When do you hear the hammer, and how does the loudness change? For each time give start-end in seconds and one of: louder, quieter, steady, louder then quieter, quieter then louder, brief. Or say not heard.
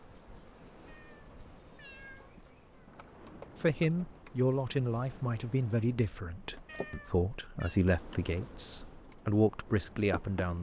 not heard.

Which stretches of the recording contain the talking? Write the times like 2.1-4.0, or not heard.
3.5-10.5.